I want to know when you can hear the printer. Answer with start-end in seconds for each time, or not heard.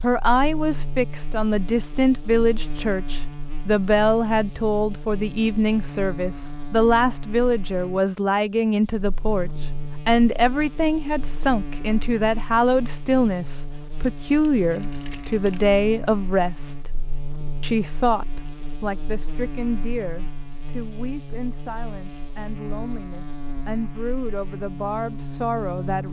not heard.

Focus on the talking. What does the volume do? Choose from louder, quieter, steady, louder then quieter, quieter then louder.
quieter.